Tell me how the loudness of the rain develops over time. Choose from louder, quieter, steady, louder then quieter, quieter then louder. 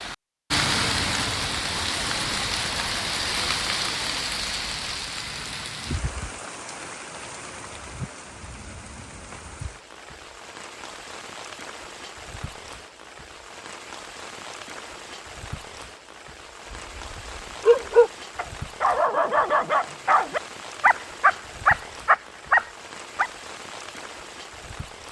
quieter.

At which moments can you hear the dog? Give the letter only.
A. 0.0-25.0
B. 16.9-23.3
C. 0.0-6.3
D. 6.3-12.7
B.